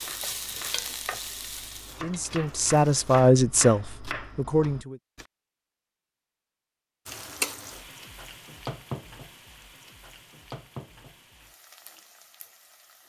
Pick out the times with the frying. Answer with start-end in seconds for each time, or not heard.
0.0-3.3, 7.0-13.0.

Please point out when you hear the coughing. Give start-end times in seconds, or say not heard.
not heard.